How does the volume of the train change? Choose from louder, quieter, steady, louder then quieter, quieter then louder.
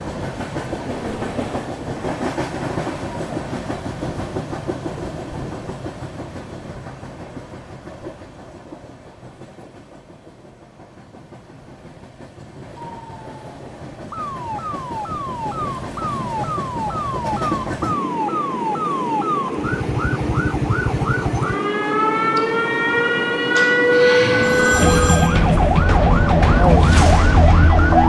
quieter then louder.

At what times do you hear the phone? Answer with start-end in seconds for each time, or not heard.
24.4-25.4.